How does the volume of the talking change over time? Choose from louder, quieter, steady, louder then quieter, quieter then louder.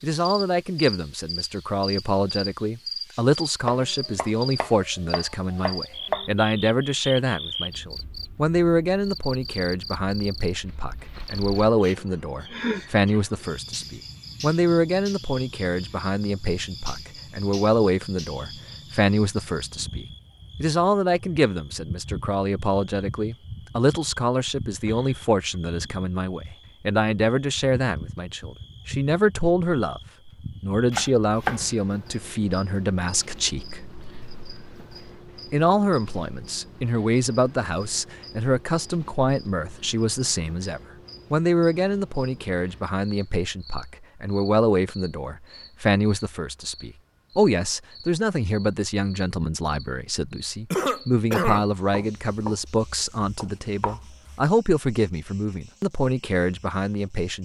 steady.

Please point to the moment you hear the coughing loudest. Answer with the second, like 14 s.
51 s.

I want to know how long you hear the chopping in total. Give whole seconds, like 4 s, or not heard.
6 s.